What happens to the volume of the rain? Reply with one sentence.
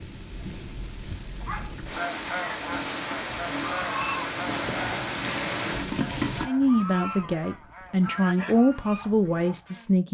The loudness of the rain goes up.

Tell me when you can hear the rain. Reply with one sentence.
You can hear the rain from 0.0 to 6.5 s.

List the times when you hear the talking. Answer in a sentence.
The talking can be heard from 6.5 to 10.0 s.